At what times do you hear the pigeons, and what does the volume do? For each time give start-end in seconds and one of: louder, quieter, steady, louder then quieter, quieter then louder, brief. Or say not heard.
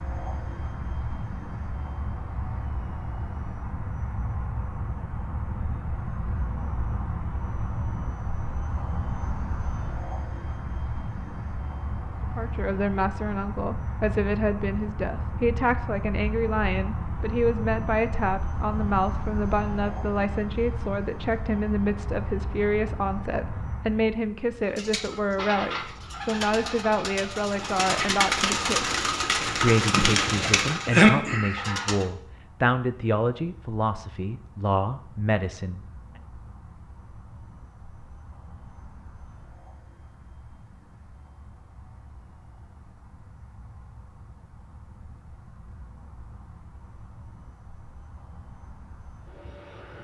24.6-32.0 louder.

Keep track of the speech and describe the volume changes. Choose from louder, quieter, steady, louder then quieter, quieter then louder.
steady.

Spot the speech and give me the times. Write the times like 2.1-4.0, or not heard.
12.3-35.9.